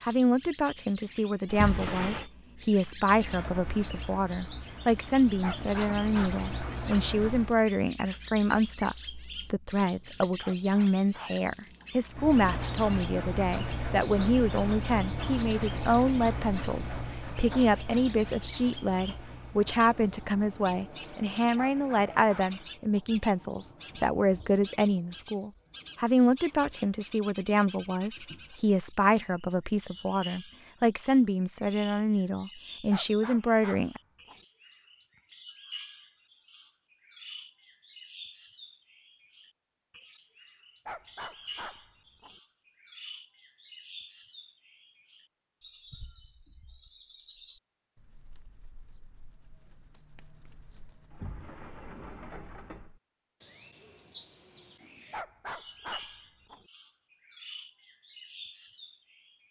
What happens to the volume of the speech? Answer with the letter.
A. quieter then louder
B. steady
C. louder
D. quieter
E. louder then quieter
B.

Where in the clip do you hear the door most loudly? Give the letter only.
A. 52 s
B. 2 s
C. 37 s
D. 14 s
B.